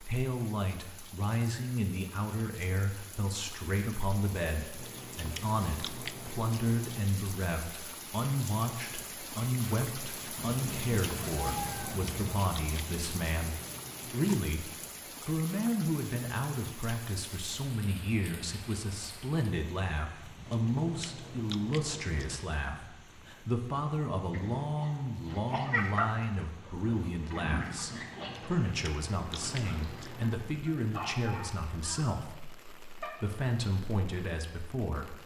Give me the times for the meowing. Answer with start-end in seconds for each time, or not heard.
10.3-12.4.